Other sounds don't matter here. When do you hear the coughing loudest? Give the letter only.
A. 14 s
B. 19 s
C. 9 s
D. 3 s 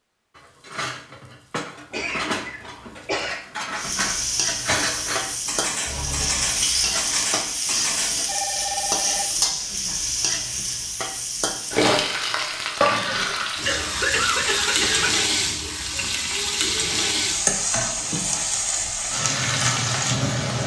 A.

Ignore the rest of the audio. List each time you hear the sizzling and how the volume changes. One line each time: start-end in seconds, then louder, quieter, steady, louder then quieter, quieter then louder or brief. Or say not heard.
3.8-20.6 steady.